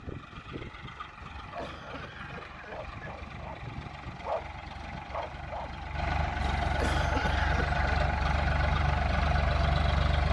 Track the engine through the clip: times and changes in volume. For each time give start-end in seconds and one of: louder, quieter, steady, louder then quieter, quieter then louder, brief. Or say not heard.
0.0-10.2 louder.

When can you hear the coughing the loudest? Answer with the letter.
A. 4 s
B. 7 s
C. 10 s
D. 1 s
B.